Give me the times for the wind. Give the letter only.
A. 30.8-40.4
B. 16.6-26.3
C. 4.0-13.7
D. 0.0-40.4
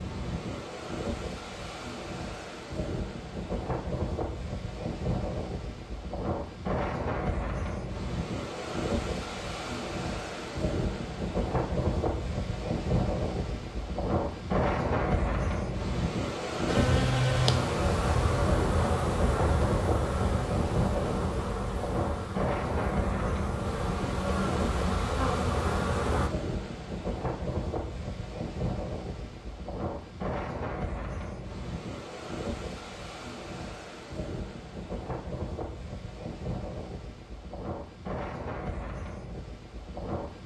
D.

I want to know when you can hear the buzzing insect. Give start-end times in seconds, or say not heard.
16.6-26.3.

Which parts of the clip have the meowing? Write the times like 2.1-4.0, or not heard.
not heard.